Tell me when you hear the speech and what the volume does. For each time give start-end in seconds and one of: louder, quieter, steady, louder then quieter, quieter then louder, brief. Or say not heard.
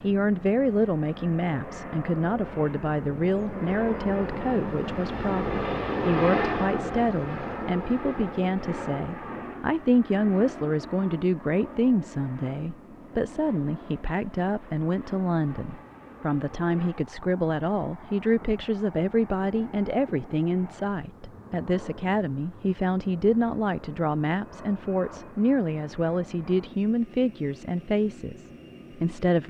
0.0-29.4 steady.